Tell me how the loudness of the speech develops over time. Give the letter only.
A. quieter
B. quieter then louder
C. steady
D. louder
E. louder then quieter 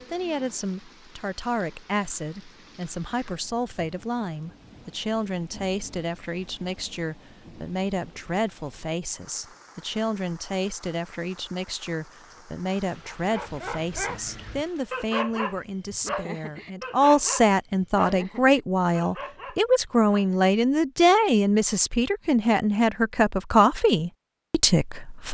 D.